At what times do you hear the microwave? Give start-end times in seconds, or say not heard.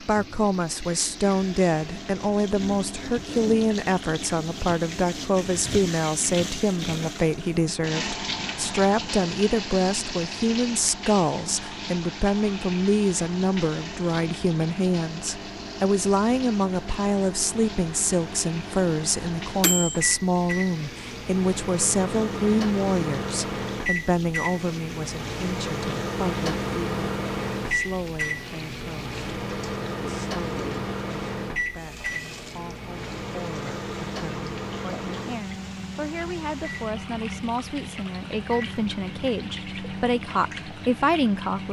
0.1-41.6.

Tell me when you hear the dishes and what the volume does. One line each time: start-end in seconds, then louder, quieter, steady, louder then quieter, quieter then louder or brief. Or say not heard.
not heard.